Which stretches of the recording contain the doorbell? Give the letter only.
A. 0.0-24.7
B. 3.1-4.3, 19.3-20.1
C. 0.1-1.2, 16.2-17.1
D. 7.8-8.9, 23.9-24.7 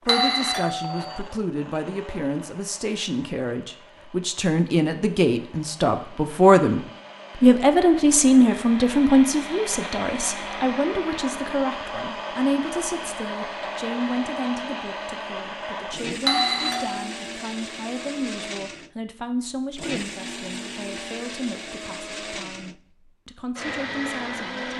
C.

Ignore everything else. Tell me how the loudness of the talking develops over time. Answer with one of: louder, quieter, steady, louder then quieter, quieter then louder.
louder then quieter.